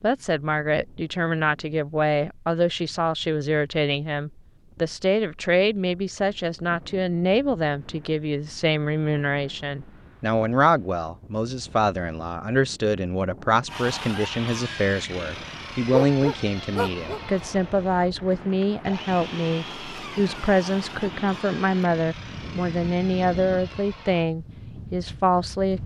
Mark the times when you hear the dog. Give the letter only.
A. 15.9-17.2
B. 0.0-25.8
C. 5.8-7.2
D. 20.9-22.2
A.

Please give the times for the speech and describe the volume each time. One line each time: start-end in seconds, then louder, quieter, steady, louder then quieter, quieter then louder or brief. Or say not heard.
0.0-25.8 steady.